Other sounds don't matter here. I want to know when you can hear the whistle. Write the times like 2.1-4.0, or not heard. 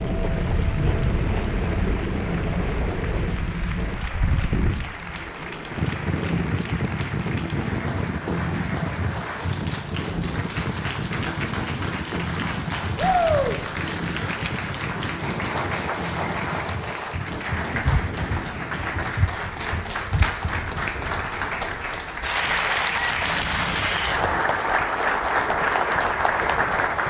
not heard.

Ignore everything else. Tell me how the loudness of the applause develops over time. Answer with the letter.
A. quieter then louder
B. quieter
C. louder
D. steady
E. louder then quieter
C.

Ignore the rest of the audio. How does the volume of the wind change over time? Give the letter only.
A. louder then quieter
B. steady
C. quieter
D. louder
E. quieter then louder
C.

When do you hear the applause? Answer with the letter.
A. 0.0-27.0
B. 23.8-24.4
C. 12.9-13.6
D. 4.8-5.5
A.